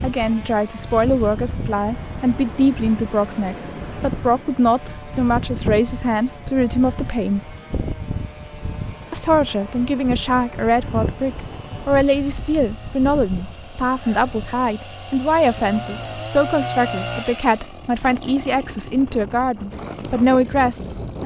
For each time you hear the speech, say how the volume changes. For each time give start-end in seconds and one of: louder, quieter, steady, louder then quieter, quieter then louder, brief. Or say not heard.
0.0-7.5 steady
9.1-21.2 steady.